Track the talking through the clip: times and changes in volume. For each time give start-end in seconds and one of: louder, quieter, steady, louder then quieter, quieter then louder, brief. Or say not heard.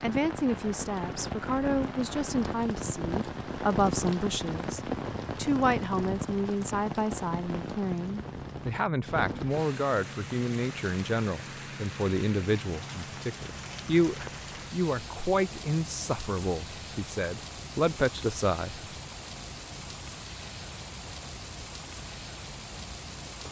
0.0-18.8 steady.